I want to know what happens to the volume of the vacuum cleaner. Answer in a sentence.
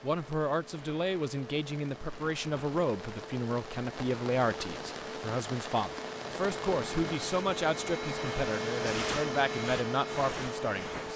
The loudness of the vacuum cleaner goes up.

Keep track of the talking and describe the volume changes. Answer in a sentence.
The loudness of the talking stays about the same.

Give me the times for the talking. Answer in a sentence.
The talking can be heard from 0.0 to 11.1 s.